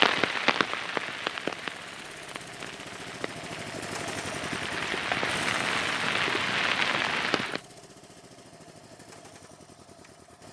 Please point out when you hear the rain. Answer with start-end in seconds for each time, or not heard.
0.0-7.6.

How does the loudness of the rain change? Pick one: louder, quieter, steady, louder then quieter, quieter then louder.
quieter then louder.